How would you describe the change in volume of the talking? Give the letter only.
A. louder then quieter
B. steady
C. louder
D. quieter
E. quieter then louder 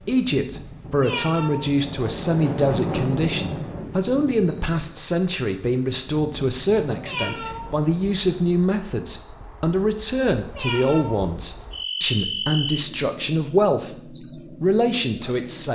B.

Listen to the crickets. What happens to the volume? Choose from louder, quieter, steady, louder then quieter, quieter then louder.
louder then quieter.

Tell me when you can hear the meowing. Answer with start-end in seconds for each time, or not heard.
1.0-1.7, 7.0-7.8, 10.5-11.2.